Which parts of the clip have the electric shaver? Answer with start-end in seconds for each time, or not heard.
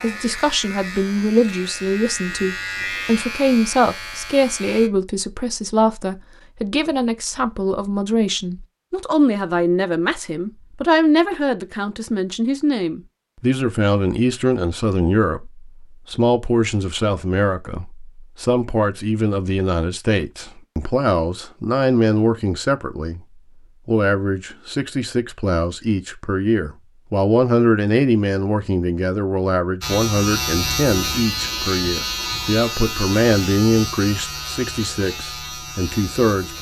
0.0-4.9, 29.8-36.5.